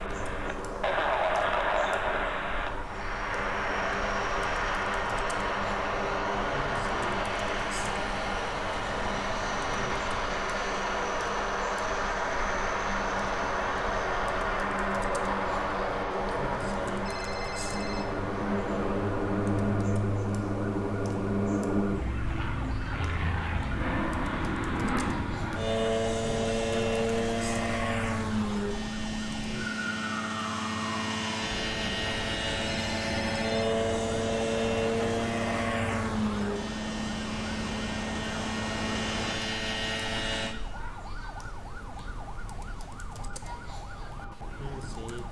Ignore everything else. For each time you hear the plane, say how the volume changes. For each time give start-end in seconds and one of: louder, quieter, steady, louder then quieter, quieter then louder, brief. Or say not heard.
0.0-40.5 steady.